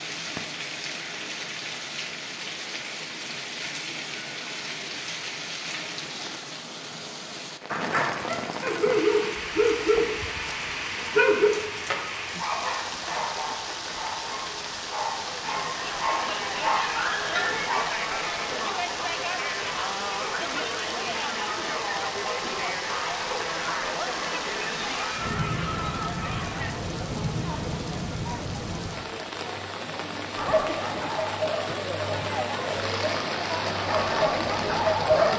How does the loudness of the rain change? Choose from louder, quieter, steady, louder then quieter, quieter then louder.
steady.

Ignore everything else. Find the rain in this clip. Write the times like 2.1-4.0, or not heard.
0.0-35.3.